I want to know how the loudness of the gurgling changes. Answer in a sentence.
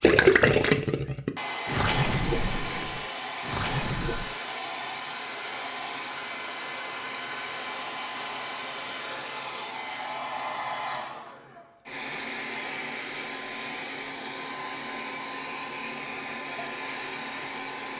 The loudness of the gurgling goes down, then up.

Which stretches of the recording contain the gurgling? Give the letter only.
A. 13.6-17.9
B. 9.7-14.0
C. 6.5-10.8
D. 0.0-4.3
D.